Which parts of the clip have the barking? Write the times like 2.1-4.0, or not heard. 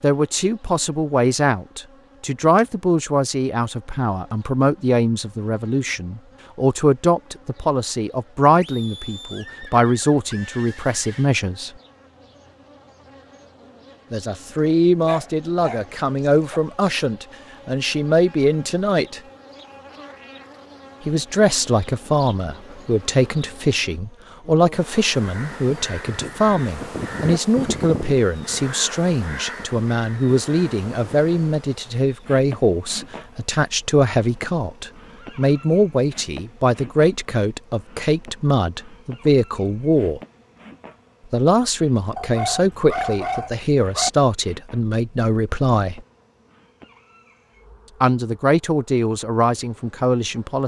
14.6-16.6, 42.1-44.1.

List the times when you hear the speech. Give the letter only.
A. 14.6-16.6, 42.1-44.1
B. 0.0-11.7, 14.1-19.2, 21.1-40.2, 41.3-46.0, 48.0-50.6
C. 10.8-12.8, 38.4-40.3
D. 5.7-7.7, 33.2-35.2
B.